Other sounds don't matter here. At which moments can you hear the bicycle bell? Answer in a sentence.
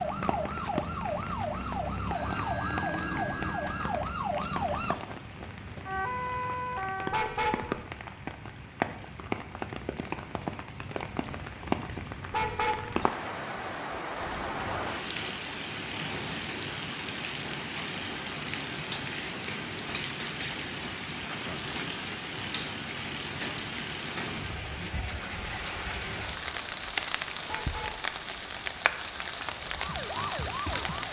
You can hear the bicycle bell from 2.1 to 3.9 s.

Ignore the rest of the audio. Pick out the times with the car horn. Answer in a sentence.
You can hear the car horn from 7.1 to 7.8 s, from 12.3 to 13.1 s and from 27.4 to 28.1 s.